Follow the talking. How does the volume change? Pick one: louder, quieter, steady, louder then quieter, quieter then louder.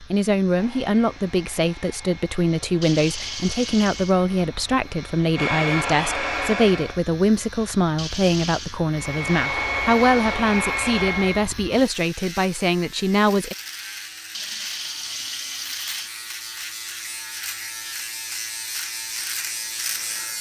steady.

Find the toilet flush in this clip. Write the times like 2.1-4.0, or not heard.
2.8-4.2, 8.0-8.8, 14.3-16.1.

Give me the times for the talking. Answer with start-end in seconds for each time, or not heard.
0.0-13.6.